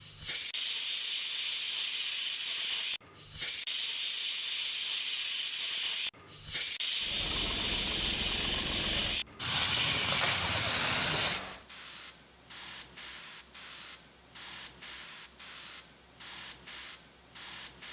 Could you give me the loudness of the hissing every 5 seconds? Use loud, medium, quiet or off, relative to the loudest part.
loud, loud, loud, medium.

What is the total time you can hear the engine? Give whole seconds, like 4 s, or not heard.
5 s.